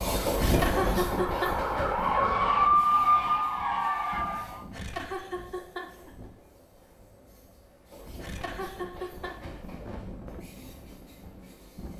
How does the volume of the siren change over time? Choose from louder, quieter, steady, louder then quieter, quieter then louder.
louder then quieter.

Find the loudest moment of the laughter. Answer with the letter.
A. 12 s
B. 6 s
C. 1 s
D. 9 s
C.